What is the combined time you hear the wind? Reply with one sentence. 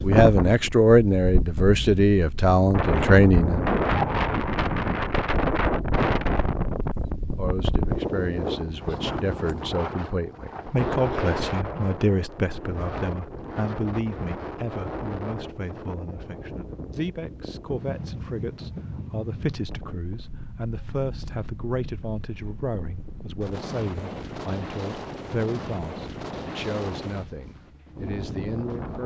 The wind can be heard for 29 seconds in total.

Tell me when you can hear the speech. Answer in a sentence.
The speech can be heard from 0.0 to 3.6 s and from 7.2 to 29.0 s.